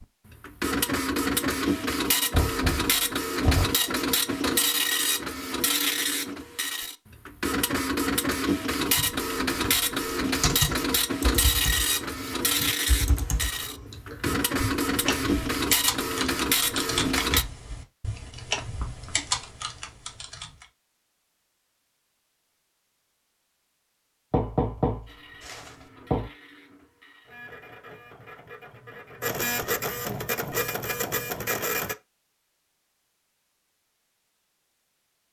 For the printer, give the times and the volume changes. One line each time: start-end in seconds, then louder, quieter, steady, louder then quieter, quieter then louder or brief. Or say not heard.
0.0-17.4 steady
25.1-31.9 louder.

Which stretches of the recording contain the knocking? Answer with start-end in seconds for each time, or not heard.
2.3-3.8, 18.6-19.2, 24.3-26.3.